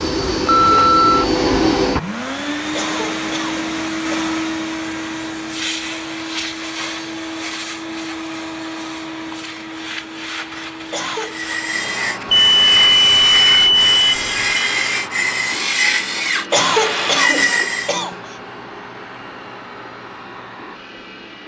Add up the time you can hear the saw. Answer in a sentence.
The saw can be heard for 7 seconds in total.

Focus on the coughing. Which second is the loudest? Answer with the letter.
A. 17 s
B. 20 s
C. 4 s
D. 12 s
A.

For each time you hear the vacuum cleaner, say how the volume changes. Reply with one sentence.
The vacuum cleaner can be heard from 0.0 to 21.4 s, getting quieter.